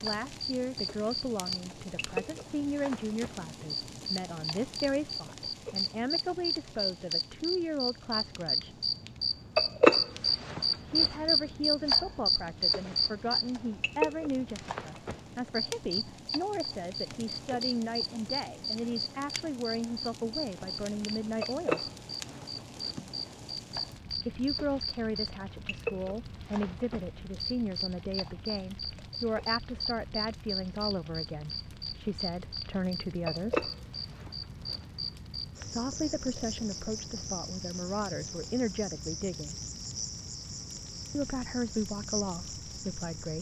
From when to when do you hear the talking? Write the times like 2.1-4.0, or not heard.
0.0-8.8, 10.8-21.9, 24.2-33.7, 35.6-39.5, 41.1-43.3.